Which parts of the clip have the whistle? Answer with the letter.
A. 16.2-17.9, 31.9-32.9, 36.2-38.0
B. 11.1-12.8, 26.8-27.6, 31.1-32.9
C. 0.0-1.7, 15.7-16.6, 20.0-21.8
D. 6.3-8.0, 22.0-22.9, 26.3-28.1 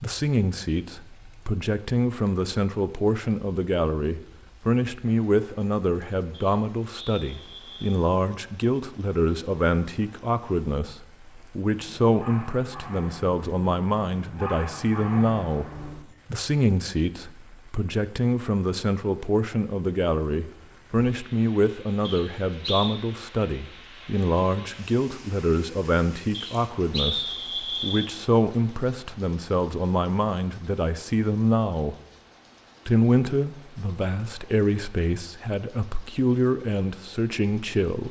D.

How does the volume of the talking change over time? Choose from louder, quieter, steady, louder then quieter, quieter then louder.
steady.